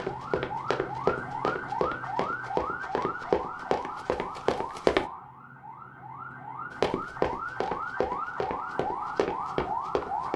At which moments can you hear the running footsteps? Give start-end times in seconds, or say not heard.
0.0-5.0, 6.8-10.3.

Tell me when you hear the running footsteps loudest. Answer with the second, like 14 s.
5 s.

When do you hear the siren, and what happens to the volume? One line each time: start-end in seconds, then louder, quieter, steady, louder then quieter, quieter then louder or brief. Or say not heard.
0.0-10.3 quieter then louder.